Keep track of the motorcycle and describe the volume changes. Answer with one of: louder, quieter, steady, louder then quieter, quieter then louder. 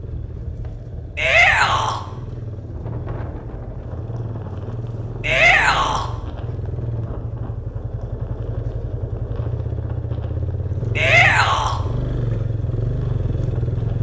louder.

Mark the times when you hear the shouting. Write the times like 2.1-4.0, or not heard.
1.1-2.0, 5.2-6.1, 10.9-11.8.